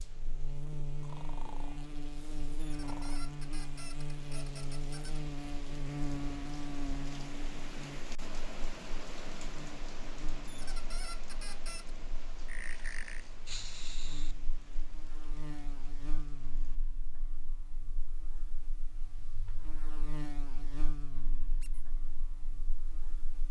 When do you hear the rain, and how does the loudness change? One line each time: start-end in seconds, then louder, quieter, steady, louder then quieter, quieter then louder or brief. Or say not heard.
0.0-16.8 louder then quieter.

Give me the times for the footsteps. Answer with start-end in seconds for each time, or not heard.
not heard.